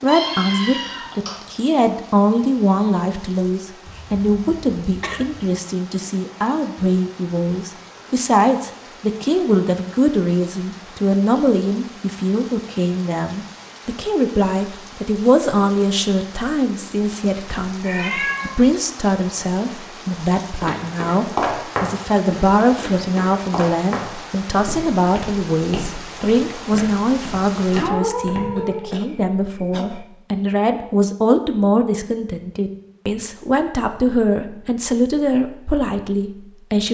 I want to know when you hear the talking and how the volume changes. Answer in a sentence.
You can hear the talking from 0.0 to 36.8 s, at a steady volume.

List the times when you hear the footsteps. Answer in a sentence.
The footsteps can be heard from 20.6 to 28.8 s.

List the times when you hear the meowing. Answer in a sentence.
You can hear the meowing from 0.1 to 1.4 s, from 17.8 to 18.7 s and from 27.7 to 28.9 s.